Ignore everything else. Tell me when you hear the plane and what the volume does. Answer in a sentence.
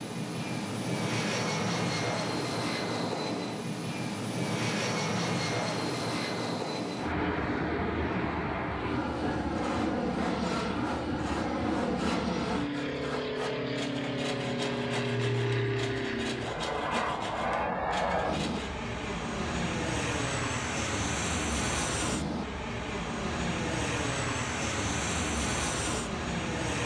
The plane can be heard from 0.0 to 26.8 s, at a steady volume.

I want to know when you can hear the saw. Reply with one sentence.
The saw can be heard from 9.1 to 18.8 s.